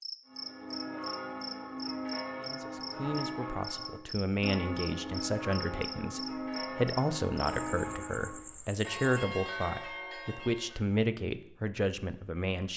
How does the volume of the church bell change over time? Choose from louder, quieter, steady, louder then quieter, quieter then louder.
steady.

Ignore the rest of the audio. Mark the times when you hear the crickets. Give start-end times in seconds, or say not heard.
0.0-9.2.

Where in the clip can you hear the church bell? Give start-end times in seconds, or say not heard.
0.2-10.8.